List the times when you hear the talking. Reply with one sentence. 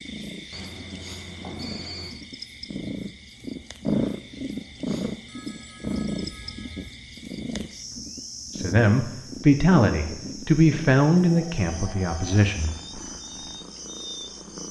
The talking can be heard from 8.6 to 12.7 s.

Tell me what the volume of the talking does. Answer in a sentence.
The volume of the talking goes down.